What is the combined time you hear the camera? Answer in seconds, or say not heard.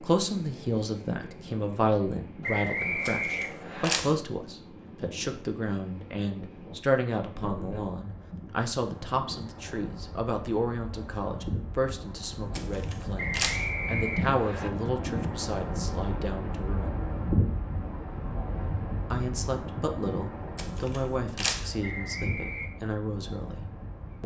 3 s.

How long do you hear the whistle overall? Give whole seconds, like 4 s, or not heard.
4 s.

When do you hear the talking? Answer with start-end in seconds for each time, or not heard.
0.0-17.1, 19.1-24.2.